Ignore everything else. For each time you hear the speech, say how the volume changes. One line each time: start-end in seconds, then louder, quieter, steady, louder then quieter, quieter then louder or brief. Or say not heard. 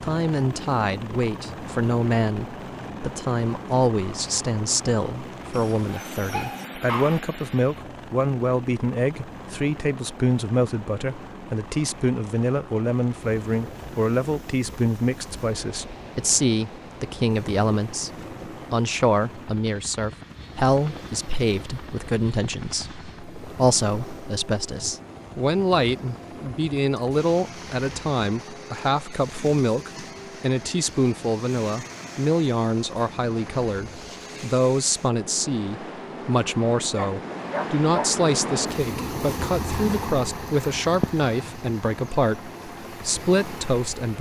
0.0-44.1 steady.